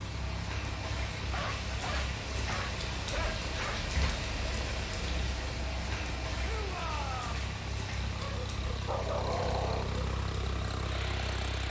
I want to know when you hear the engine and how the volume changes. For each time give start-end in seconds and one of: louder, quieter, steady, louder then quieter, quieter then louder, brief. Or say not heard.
0.0-11.6 louder.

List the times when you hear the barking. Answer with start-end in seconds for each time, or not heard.
1.2-4.2, 8.2-10.0.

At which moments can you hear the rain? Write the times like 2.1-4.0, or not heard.
0.0-11.6.